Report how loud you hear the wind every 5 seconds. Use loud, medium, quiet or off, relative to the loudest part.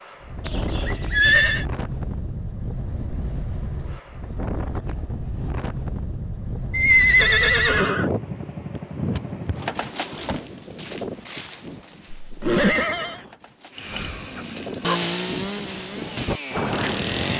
loud, loud, medium, loud.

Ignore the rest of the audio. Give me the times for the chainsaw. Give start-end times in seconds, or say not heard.
13.7-17.3.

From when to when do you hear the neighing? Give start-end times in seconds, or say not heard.
0.4-1.6, 6.7-8.1, 12.2-13.2.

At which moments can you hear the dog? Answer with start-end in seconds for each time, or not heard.
13.8-15.0.